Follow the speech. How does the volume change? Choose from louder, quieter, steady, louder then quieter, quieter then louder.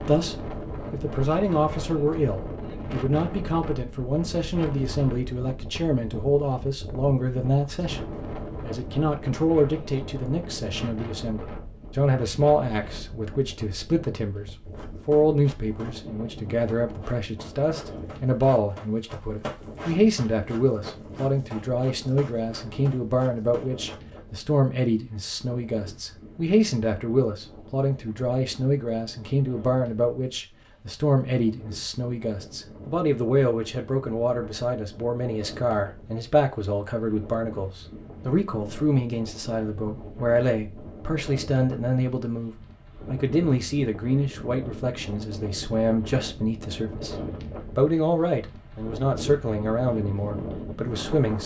steady.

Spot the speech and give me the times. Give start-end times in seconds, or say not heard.
0.0-47.1, 47.8-51.4.